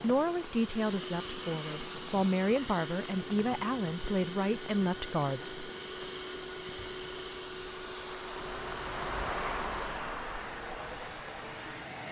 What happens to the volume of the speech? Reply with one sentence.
The volume of the speech stays about the same.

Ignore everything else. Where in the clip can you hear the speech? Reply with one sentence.
You can hear the speech from 0.0 to 5.7 s.